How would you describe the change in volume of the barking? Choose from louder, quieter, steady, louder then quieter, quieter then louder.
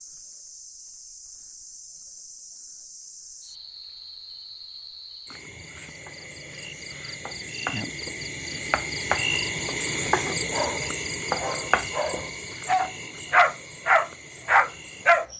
louder.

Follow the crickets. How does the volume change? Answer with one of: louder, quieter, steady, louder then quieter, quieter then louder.
louder then quieter.